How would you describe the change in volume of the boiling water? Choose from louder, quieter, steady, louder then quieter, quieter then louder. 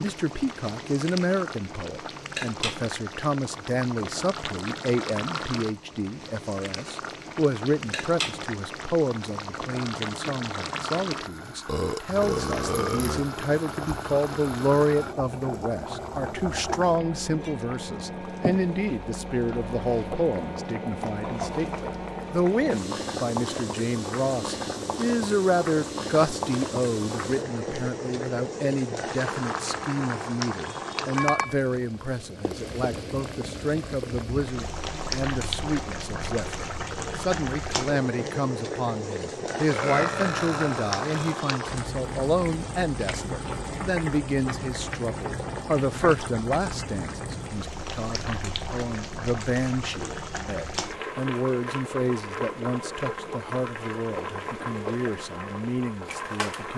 steady.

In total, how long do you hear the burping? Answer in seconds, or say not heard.
3 s.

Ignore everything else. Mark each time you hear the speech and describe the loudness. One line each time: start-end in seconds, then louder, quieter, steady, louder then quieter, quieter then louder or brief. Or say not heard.
0.0-56.7 steady.